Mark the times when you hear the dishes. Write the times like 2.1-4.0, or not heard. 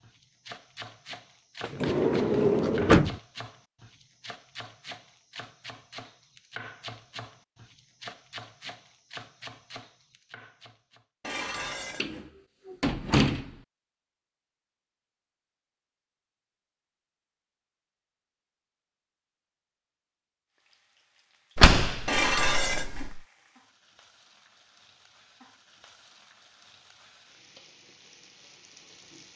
11.2-12.3, 22.1-23.1.